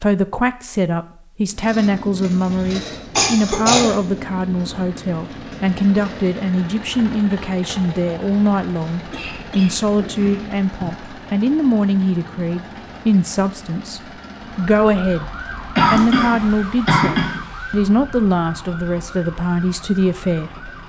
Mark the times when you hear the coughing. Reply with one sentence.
The coughing can be heard from 2.2 to 3.9 s, from 9.1 to 10.9 s and from 15.8 to 17.4 s.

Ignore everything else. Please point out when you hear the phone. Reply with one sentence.
You can't hear the phone here.